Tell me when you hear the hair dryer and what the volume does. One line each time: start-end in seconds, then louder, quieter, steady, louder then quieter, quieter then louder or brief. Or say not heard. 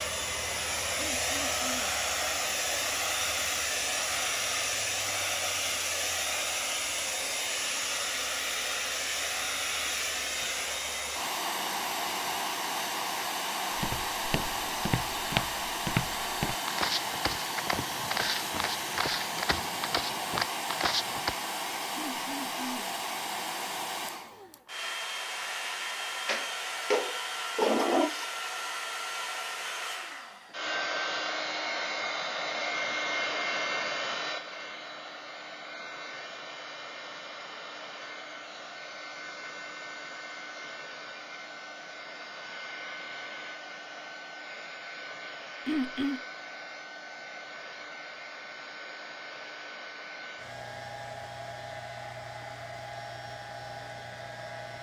0.0-54.7 quieter.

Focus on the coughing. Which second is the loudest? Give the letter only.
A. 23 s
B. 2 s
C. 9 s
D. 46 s
D.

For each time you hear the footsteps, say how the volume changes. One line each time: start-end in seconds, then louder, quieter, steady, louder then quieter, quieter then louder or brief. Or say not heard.
13.8-21.4 steady.